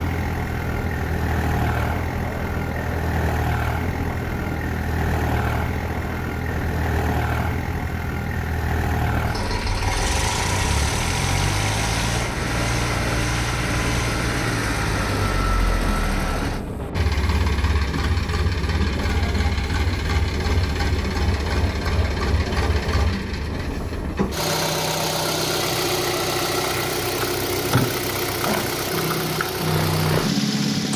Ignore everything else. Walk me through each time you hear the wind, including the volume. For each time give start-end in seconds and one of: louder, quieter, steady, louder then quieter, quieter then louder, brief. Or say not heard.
0.0-24.1 steady.